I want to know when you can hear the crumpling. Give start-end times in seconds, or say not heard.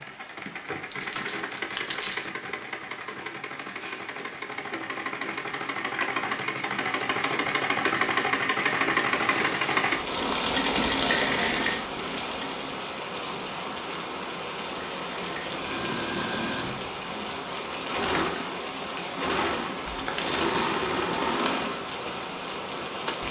0.9-2.2, 9.3-11.3, 19.9-20.6.